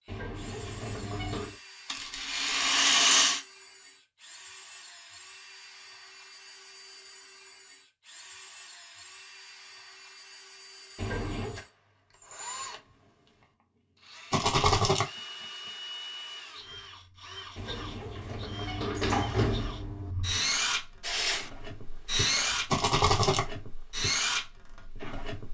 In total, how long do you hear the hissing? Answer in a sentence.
You can hear the hissing for 2 seconds altogether.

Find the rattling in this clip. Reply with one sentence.
You can hear the rattling from 1.9 to 3.4 s, from 14.3 to 15.1 s and from 22.7 to 23.4 s.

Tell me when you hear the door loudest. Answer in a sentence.
The loudest moment of the door is at 19 seconds.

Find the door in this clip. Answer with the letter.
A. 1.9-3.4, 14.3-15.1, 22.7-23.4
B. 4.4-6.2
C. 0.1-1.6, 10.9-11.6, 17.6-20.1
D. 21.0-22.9
C.